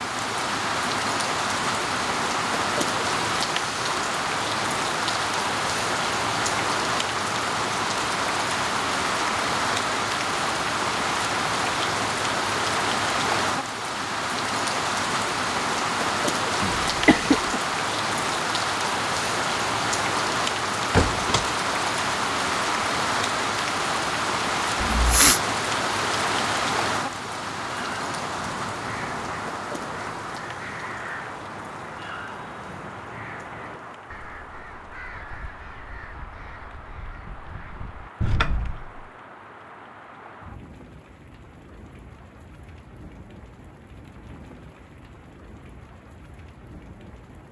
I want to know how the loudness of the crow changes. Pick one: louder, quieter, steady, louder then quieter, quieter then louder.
quieter.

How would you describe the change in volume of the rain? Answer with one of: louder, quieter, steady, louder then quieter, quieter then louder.
quieter.